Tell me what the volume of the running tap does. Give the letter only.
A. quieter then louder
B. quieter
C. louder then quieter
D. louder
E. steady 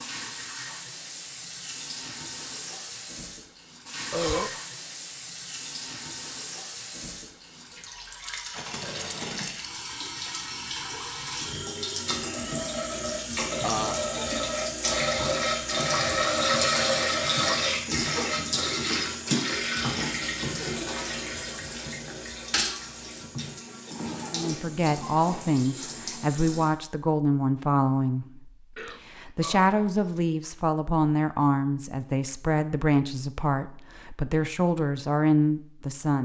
C.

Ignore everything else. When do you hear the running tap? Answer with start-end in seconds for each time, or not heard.
0.0-26.8.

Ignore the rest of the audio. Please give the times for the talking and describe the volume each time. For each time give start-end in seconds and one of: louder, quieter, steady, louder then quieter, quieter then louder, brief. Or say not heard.
24.3-36.1 steady.